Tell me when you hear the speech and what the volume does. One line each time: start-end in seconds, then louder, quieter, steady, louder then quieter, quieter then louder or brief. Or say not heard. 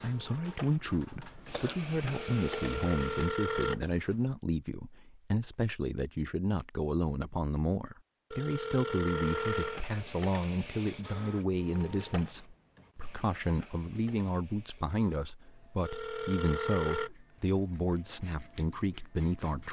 0.0-19.6 steady.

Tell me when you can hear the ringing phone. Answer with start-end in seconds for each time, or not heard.
2.1-3.9, 8.3-9.8, 15.8-17.1.